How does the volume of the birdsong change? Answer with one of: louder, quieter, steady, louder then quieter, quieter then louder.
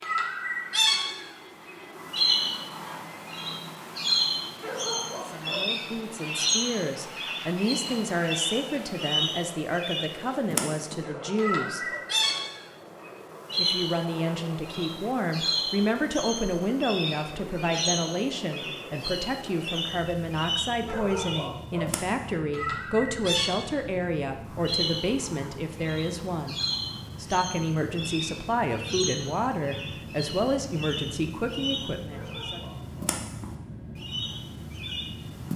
quieter.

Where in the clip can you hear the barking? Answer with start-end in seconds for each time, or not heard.
4.5-5.7, 10.9-12.1, 20.8-21.9, 32.0-33.1.